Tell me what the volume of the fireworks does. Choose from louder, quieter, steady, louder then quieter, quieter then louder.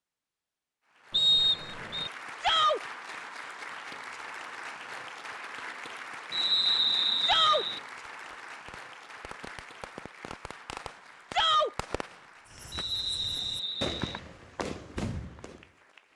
louder.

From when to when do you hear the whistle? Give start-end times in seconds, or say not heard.
1.1-2.1, 6.3-7.8, 12.7-14.2.